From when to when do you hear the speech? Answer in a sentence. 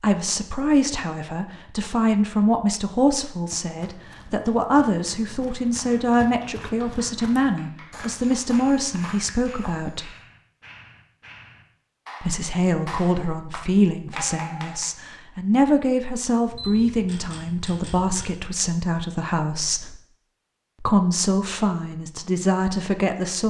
The speech can be heard from 0.0 to 10.1 s, from 12.2 to 20.0 s and from 20.8 to 23.4 s.